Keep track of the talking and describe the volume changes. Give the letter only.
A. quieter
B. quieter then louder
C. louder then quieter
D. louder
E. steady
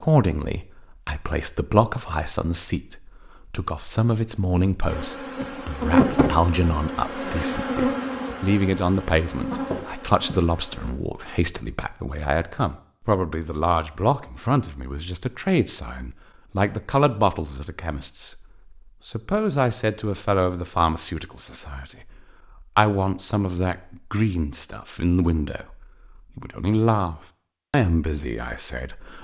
E.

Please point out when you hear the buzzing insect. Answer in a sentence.
You can hear the buzzing insect from 4.8 to 10.9 s.